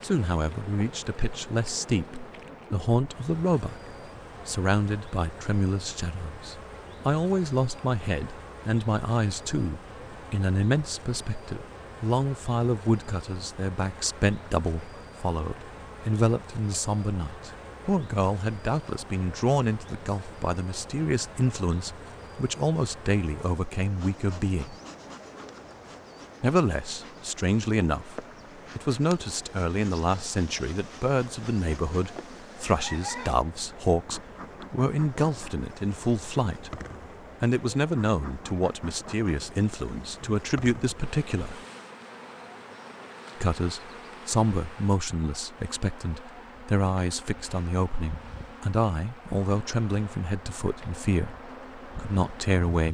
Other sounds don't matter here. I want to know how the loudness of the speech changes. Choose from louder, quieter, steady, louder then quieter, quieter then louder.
steady.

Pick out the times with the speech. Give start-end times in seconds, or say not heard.
0.0-24.8, 26.4-36.7, 37.4-41.6, 43.4-52.8.